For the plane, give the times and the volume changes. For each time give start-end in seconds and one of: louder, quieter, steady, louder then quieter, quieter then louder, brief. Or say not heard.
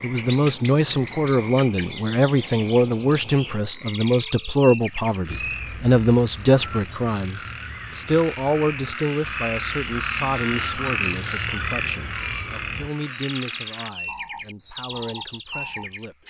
not heard.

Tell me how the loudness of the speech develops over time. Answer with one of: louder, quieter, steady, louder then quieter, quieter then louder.
quieter.